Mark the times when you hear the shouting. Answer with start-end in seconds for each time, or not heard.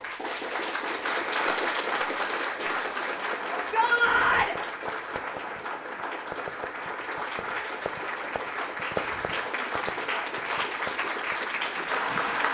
3.5-4.5.